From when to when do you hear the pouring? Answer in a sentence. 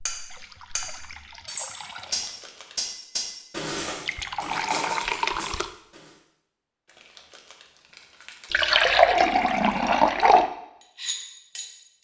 You can hear the pouring from 0.2 to 2.3 s, from 4.0 to 5.7 s and from 8.5 to 10.5 s.